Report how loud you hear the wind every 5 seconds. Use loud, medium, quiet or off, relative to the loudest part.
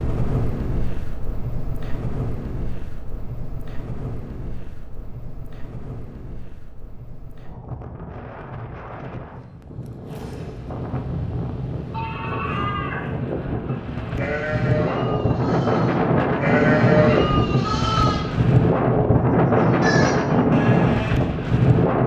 quiet, quiet, medium, loud, loud.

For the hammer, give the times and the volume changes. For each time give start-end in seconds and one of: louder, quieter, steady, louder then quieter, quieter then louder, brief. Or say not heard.
not heard.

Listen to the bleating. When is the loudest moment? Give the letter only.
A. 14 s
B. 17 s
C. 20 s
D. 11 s
B.